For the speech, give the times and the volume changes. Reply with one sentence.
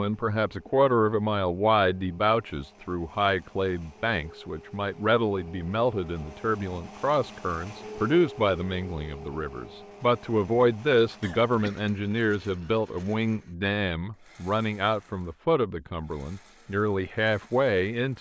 The speech can be heard from 0.0 to 18.1 s, at a steady volume.